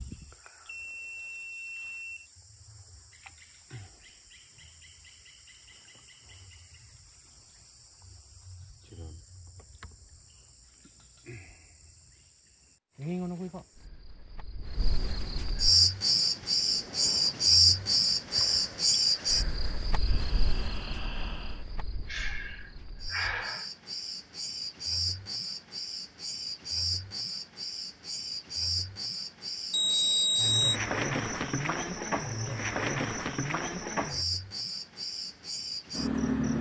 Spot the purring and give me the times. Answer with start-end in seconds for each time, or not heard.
not heard.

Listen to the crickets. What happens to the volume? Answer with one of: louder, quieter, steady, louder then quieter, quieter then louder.
louder then quieter.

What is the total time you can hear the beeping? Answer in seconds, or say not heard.
4 s.